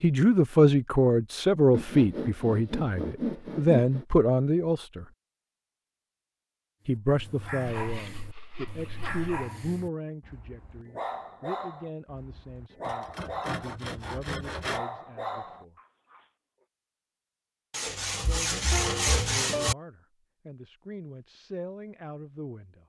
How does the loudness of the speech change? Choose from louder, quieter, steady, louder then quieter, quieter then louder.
quieter.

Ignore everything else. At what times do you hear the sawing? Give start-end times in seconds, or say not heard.
1.7-4.0, 7.7-9.3, 12.8-14.8, 17.7-19.8.